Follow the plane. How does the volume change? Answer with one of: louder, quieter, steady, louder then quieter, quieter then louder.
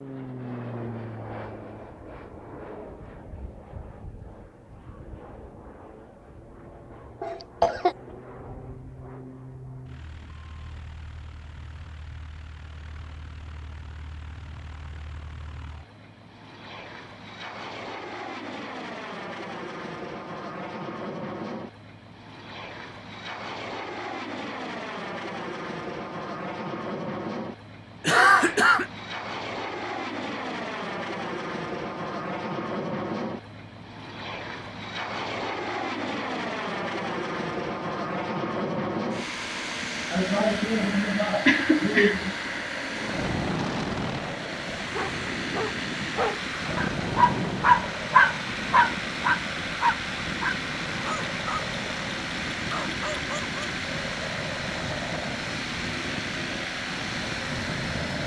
louder.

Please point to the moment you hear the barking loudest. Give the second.
48 s.